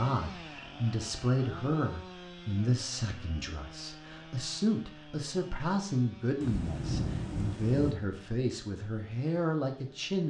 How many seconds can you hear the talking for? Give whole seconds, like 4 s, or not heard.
10 s.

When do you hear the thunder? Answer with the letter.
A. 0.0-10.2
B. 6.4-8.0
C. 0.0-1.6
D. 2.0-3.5
B.